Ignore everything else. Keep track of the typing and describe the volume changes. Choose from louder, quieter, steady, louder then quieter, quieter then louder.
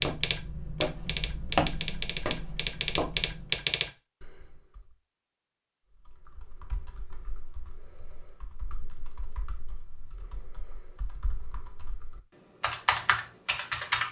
quieter then louder.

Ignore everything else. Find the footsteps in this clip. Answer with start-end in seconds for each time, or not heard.
0.0-3.7.